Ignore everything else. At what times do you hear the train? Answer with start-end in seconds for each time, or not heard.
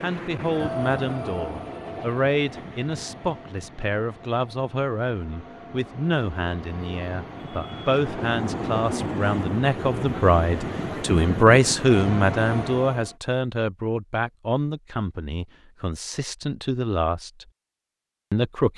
0.0-13.2.